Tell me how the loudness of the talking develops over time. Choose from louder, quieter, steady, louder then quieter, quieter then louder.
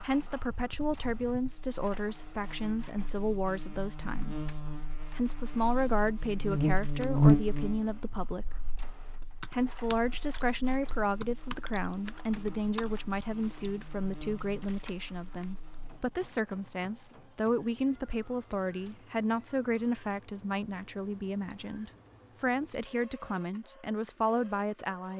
steady.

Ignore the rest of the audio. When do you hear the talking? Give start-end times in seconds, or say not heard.
0.0-8.5, 9.5-25.1.